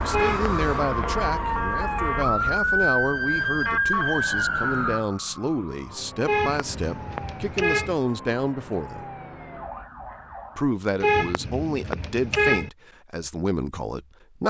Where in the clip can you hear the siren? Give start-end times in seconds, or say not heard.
0.0-10.7.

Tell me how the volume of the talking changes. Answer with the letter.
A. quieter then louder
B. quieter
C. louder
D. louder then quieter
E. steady
E.